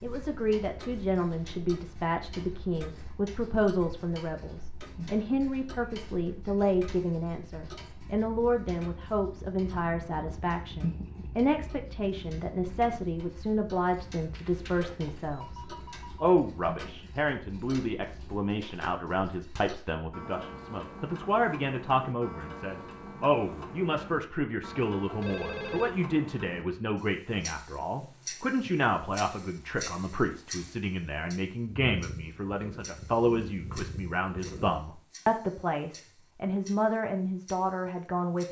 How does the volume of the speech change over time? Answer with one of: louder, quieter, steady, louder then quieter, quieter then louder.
steady.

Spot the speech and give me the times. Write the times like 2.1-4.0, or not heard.
0.0-38.4.